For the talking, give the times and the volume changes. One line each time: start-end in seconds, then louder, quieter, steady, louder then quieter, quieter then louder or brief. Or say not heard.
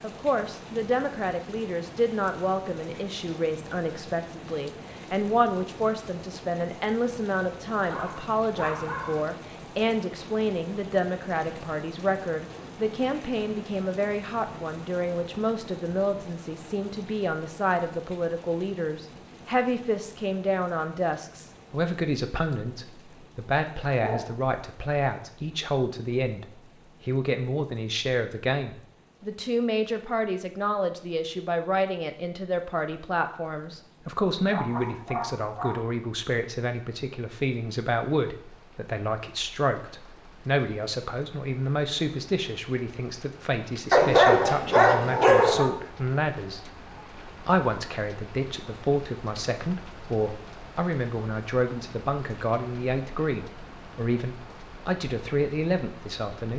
0.0-56.5 steady.